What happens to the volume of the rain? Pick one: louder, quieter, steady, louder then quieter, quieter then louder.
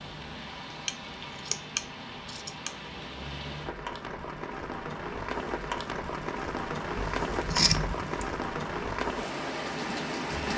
louder.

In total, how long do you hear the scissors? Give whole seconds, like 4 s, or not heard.
3 s.